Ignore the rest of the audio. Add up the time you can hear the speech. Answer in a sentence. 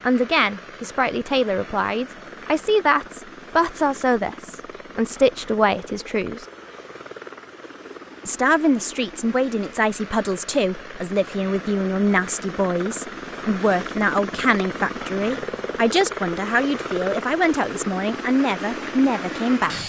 The speech can be heard for 18 seconds in total.